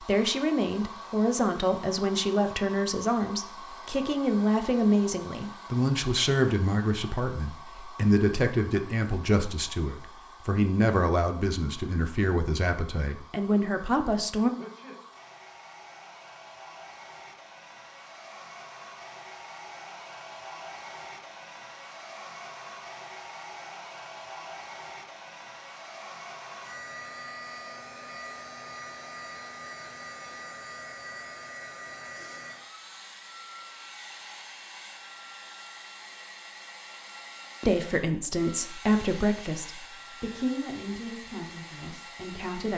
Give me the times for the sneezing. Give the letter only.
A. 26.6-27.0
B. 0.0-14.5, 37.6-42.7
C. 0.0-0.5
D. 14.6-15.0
D.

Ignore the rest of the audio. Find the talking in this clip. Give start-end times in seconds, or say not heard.
0.0-14.5, 37.6-42.7.